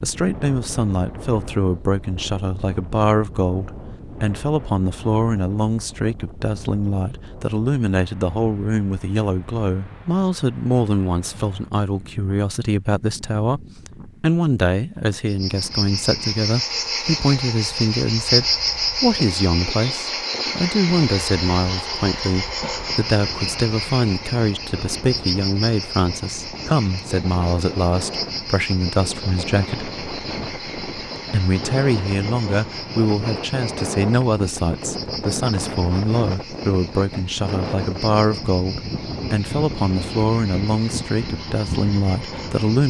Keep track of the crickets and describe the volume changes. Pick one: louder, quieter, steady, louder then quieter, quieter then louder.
quieter.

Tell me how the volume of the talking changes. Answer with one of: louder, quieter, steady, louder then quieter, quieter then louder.
steady.